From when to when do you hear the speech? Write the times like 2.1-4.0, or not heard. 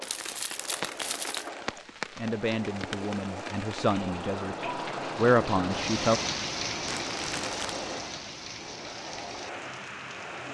2.1-4.5, 5.2-6.2.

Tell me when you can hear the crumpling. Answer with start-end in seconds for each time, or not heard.
0.0-1.4, 6.8-7.8.